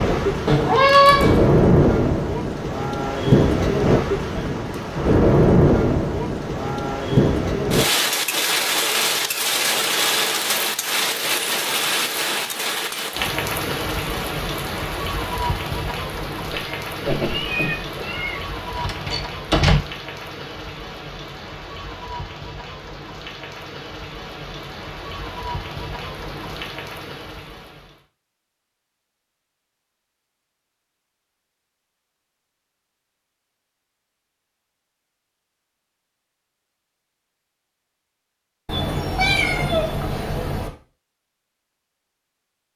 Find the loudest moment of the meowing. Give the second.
1 s.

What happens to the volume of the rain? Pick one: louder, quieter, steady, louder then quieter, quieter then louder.
quieter.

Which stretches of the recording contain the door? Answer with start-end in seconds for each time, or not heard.
18.8-19.8.